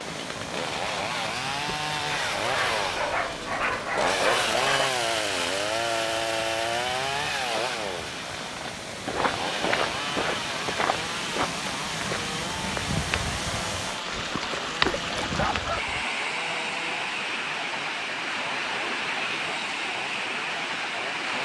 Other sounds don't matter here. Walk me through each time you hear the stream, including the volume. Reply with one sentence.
You can hear the stream from 0.0 to 21.4 s, getting louder.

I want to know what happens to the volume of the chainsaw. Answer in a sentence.
The loudness of the chainsaw goes down.